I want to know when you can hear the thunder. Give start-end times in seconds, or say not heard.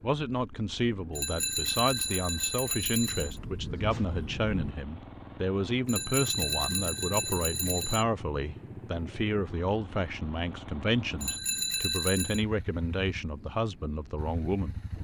2.7-4.8.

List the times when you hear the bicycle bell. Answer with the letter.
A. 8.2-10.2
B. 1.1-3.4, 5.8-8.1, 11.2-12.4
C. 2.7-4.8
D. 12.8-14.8
B.